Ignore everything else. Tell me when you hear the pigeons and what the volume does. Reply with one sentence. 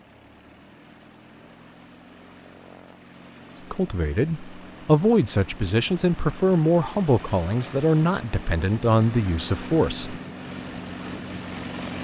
You can't hear the pigeons here.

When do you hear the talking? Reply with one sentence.
The talking can be heard from 3.7 to 10.2 s.